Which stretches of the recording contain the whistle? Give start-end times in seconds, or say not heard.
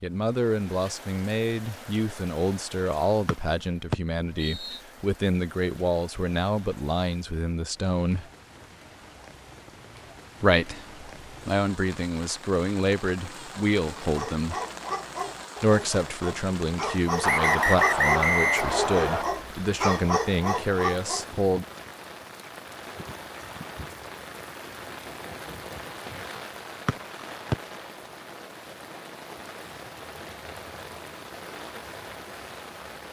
3.2-4.8, 17.2-19.2, 26.9-27.6.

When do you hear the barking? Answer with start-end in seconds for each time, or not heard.
13.9-21.3.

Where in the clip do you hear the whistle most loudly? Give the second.
18 s.